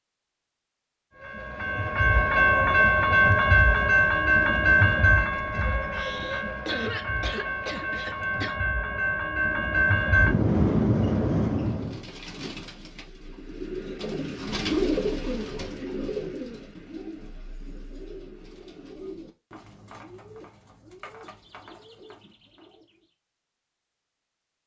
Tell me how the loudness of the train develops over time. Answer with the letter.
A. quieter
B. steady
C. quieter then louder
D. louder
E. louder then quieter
C.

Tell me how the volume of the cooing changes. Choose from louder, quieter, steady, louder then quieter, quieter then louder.
louder then quieter.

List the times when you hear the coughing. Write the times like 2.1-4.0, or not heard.
5.9-8.6.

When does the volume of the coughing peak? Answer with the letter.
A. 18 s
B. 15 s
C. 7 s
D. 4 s
C.